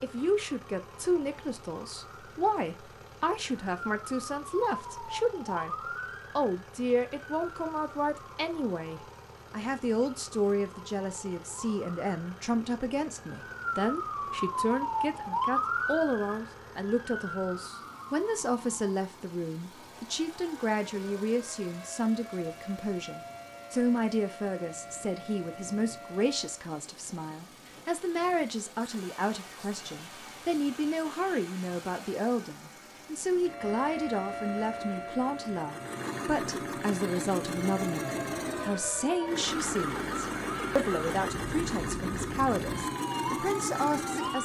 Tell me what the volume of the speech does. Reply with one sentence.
The loudness of the speech stays about the same.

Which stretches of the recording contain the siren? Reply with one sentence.
The siren can be heard from 0.0 to 26.6 s and from 33.4 to 44.3 s.